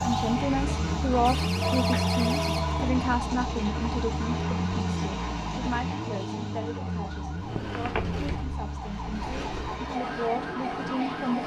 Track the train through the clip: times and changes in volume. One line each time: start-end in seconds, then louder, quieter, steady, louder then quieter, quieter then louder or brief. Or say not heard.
0.0-11.4 quieter then louder.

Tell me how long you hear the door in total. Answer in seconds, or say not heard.
4 s.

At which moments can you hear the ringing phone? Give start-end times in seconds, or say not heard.
1.6-3.0, 7.5-8.0.